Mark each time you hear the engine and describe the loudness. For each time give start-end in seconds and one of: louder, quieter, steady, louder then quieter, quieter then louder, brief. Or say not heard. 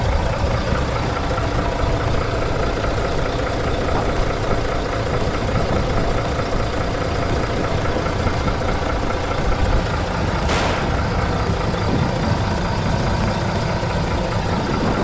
0.0-14.9 steady.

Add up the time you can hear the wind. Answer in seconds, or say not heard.
15 s.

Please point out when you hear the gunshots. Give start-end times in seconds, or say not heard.
10.4-10.9.